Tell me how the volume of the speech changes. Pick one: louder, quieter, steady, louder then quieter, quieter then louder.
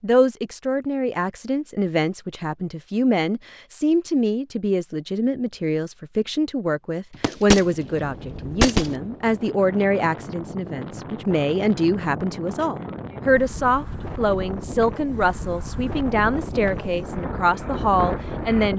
steady.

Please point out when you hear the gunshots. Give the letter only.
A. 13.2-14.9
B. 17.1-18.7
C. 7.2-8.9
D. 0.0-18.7
C.